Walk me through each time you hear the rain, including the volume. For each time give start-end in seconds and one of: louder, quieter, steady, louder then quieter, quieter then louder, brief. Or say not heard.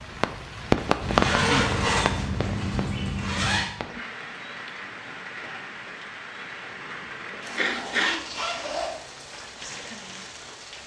0.0-10.8 quieter.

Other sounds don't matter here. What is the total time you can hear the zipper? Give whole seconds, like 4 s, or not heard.
4 s.